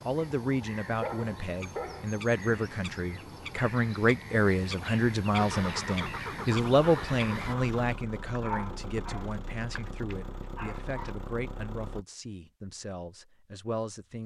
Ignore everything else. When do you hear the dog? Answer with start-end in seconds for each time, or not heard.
0.9-2.1, 8.3-11.1.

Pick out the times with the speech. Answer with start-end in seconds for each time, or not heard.
0.0-14.2.